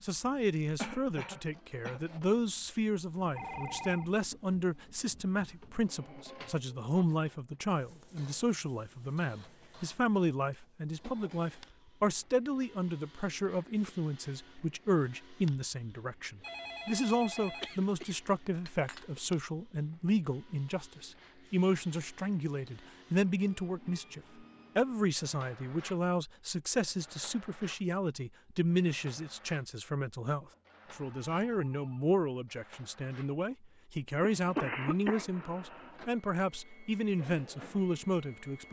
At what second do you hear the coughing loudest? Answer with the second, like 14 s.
35 s.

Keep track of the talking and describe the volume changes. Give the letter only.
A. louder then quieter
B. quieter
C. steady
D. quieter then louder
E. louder
C.